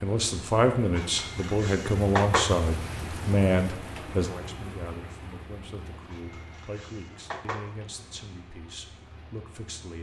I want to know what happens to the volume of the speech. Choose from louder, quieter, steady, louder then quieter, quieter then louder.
quieter.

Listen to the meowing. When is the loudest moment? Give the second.
2 s.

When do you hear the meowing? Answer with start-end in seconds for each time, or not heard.
0.9-2.6, 6.1-7.8.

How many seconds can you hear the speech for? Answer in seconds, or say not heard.
10 s.